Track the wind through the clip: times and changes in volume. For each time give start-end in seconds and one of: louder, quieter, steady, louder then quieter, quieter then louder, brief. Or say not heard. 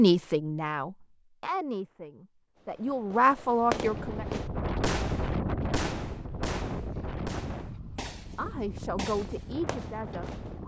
3.6-10.6 quieter.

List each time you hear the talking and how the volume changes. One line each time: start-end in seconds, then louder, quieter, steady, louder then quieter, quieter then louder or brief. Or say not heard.
0.0-4.2 quieter then louder
8.3-10.6 brief.